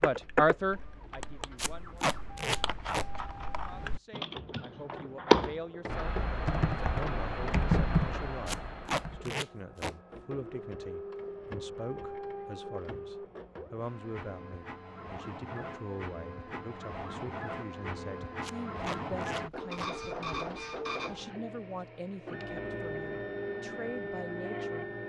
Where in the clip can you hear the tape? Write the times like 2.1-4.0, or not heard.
1.6-3.0, 8.4-9.9, 18.4-19.9.